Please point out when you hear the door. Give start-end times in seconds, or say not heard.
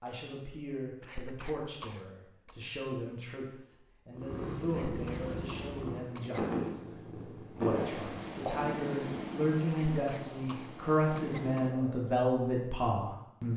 not heard.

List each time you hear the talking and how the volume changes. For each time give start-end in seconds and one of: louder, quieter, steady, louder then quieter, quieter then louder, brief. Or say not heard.
0.0-13.5 louder.